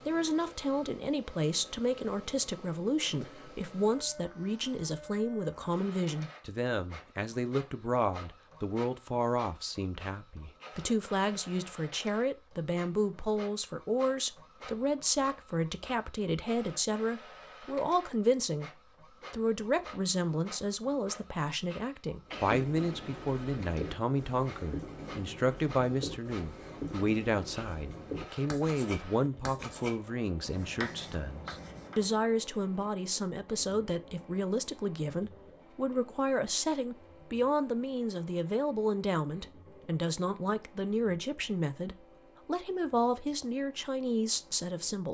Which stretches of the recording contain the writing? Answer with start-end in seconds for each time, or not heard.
22.2-32.1.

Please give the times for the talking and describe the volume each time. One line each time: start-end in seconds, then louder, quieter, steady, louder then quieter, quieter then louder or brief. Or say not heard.
0.1-45.0 steady.